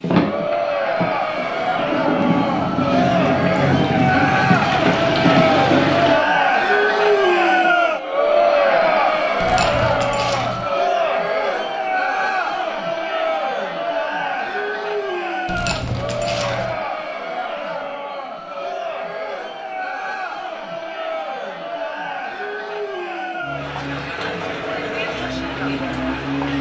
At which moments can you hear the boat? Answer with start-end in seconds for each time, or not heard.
0.0-6.2, 23.4-26.5.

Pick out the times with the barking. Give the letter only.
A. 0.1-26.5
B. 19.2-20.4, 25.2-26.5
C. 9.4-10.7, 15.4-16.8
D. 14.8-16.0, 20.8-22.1
C.